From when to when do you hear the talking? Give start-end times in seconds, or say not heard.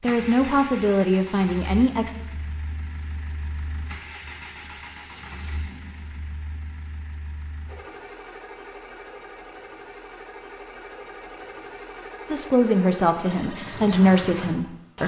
0.0-2.1, 12.3-15.0.